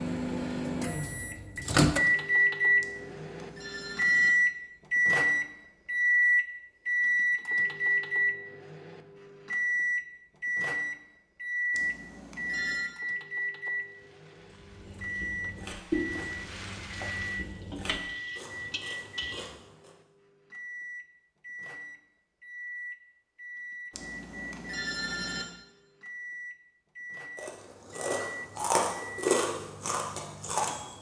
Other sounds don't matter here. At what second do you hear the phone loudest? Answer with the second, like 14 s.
25 s.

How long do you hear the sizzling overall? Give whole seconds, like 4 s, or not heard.
6 s.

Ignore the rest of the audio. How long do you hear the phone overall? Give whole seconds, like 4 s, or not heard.
4 s.